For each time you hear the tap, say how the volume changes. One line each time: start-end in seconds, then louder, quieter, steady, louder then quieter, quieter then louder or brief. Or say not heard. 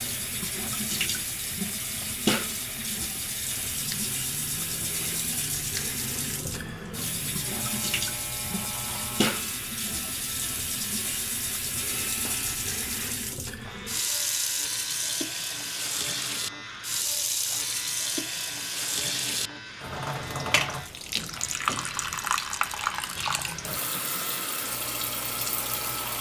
0.0-26.1 steady.